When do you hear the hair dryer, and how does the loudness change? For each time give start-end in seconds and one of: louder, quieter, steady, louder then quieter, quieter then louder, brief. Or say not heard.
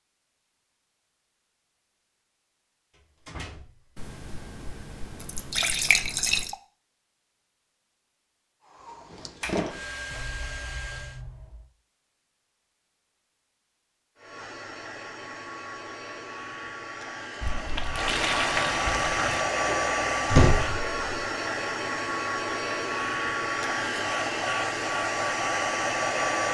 8.6-11.2 brief
14.2-26.4 louder.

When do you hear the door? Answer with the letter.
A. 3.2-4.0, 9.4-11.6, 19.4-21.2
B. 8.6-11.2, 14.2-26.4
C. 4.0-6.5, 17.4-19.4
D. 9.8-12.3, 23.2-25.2
A.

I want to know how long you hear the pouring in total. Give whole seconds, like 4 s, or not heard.
5 s.